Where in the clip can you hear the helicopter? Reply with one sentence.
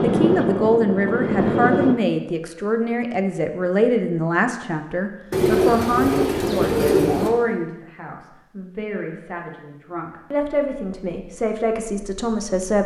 The helicopter can be heard from 0.0 to 2.0 s.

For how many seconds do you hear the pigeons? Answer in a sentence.
You can hear the pigeons for 2 seconds altogether.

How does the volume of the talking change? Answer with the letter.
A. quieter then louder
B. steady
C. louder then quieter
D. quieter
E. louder
A.